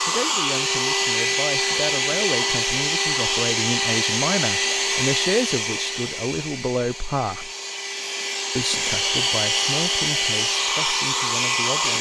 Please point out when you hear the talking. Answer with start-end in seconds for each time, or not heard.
0.0-7.5, 8.6-11.9.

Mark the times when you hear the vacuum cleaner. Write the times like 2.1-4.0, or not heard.
0.0-11.9.